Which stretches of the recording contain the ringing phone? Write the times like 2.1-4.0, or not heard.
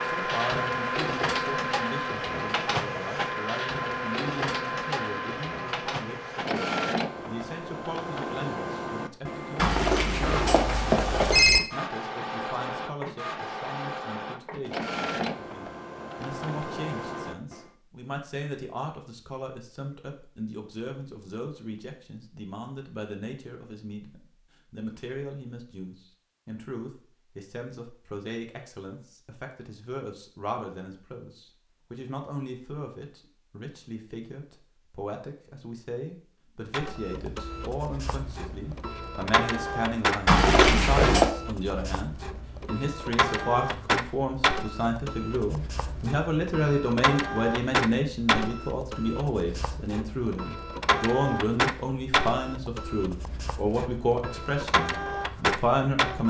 9.6-11.6, 40.2-41.3.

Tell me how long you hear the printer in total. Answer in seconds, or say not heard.
37 s.